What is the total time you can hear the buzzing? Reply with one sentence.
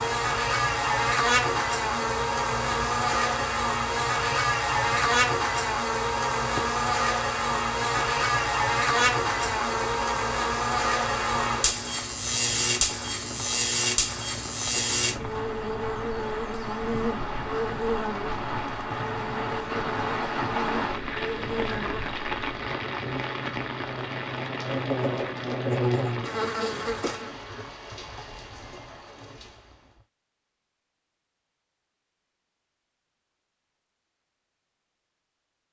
The buzzing can be heard for 27 seconds in total.